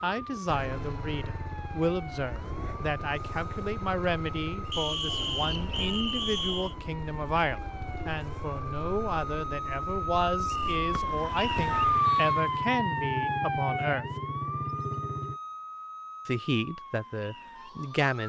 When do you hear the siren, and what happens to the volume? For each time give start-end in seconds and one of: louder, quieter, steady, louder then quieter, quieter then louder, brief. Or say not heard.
0.0-18.2 louder then quieter.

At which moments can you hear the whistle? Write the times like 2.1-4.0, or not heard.
4.7-6.8, 10.9-12.3.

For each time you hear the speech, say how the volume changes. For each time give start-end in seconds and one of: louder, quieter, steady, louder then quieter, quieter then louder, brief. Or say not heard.
0.0-14.1 steady
16.2-18.2 brief.